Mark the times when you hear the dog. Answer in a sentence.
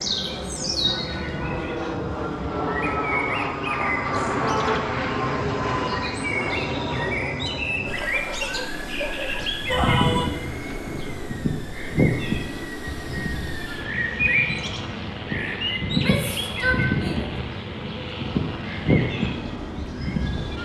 You can hear the dog from 8.0 to 9.7 s.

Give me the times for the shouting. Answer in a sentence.
You can hear the shouting from 4.4 to 4.8 s, from 9.7 to 10.3 s and from 15.8 to 17.3 s.